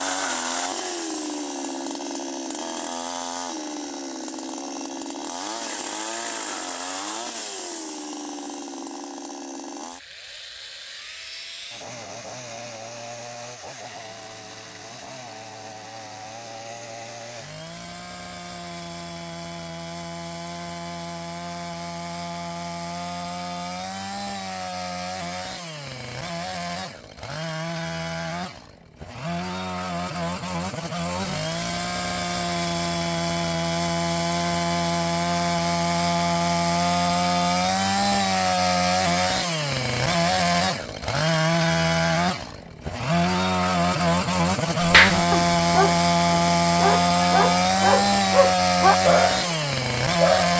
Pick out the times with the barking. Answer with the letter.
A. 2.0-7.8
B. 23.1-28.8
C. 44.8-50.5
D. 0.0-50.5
C.